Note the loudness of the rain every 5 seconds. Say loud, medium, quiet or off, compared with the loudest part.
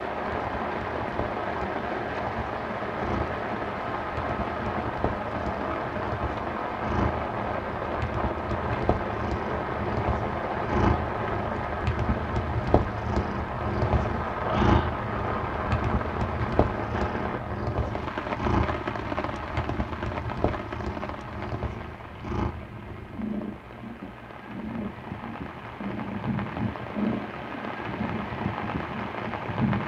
loud, loud, loud, loud, medium, loud.